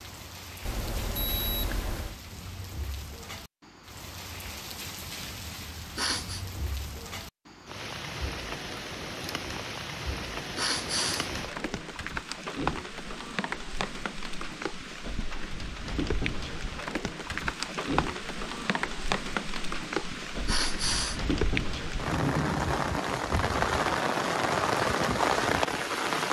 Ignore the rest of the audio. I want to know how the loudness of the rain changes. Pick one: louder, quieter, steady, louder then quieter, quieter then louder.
louder.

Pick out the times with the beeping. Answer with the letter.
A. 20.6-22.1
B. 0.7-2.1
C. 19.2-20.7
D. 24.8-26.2
B.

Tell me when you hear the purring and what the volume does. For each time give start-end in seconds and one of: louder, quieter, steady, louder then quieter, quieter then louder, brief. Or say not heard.
not heard.